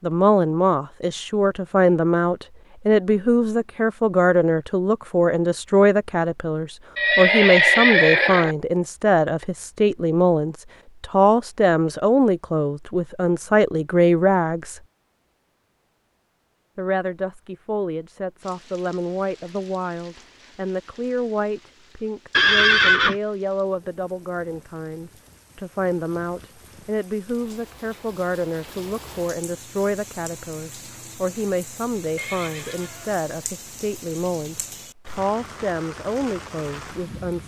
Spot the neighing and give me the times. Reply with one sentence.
You can hear the neighing from 7.0 to 8.6 s, from 22.3 to 23.1 s and from 32.1 to 33.2 s.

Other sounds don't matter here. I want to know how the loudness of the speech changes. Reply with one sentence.
The volume of the speech goes down.